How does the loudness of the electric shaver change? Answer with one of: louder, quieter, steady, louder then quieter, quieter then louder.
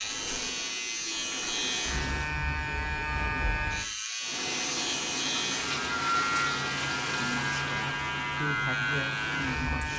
steady.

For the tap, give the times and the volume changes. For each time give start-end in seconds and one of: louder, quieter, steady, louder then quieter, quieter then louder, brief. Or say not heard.
0.0-2.4 brief
4.2-9.9 quieter.